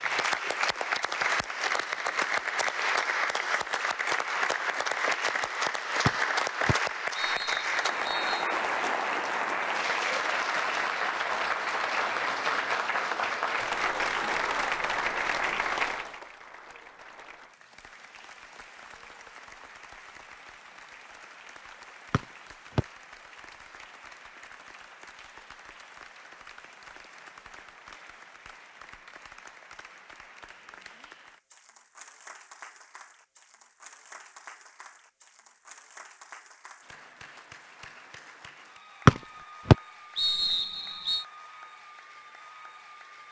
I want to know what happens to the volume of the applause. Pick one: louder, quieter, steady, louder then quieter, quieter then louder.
quieter.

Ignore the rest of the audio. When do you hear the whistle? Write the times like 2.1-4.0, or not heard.
6.0-8.4, 22.1-22.9, 39.0-41.2.